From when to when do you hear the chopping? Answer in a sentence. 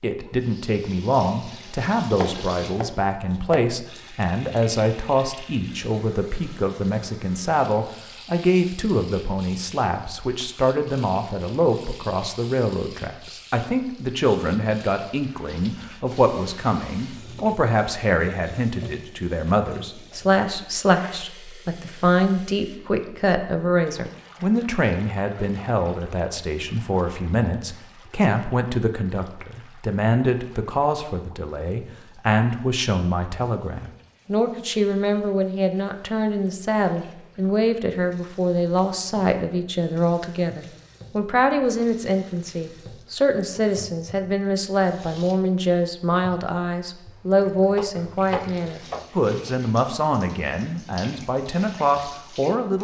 You can hear the chopping from 2.1 to 3.8 s and from 47.8 to 49.5 s.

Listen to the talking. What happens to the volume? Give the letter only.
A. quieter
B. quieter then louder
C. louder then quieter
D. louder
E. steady
E.